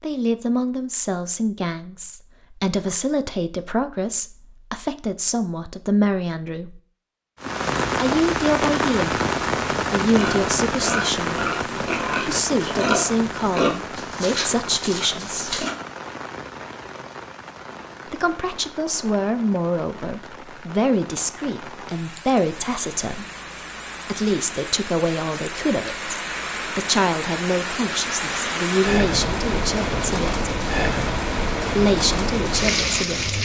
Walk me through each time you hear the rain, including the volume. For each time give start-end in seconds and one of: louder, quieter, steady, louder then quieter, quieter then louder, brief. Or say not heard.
7.4-33.4 quieter then louder.